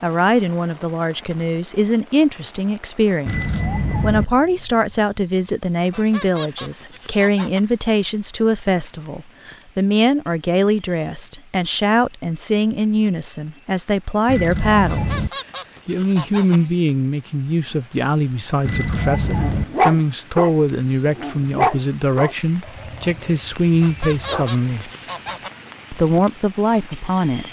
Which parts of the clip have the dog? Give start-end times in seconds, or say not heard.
19.2-24.4.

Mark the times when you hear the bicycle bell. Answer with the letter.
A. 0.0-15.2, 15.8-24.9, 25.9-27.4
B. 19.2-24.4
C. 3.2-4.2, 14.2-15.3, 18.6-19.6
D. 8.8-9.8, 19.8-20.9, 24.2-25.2
C.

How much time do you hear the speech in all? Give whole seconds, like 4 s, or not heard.
26 s.